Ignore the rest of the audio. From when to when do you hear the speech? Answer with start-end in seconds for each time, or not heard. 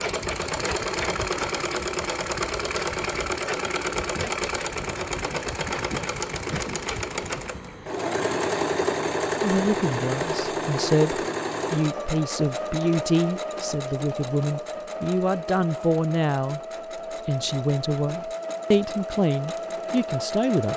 9.4-16.6, 17.2-20.7.